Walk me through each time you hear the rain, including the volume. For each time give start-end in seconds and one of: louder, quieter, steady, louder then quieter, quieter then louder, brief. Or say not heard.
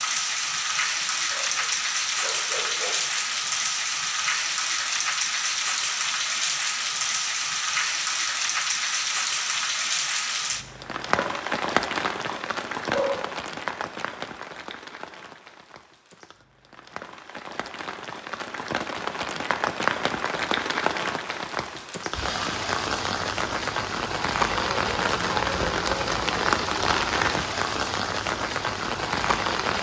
0.0-29.7 quieter then louder.